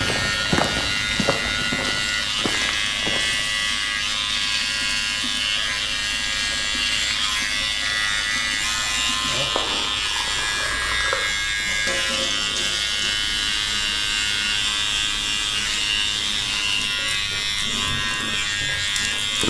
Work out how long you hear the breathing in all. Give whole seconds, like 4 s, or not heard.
not heard.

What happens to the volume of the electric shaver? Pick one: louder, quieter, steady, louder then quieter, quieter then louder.
steady.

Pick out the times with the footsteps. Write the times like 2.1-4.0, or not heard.
0.0-3.5.